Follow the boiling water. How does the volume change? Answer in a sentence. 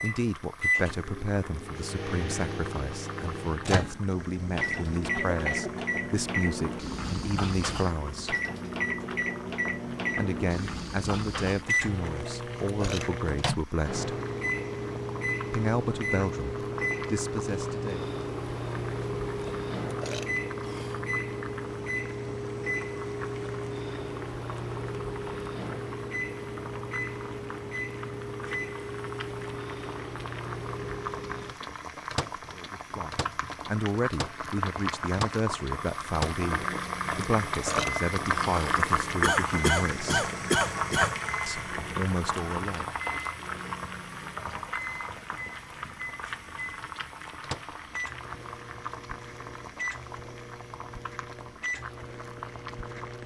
The volume of the boiling water goes up, then down.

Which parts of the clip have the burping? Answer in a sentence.
You can hear the burping from 12.2 to 13.1 s, from 19.4 to 21.1 s and from 37.1 to 39.1 s.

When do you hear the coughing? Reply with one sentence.
The coughing can be heard from 4.5 to 5.8 s and from 39.2 to 41.2 s.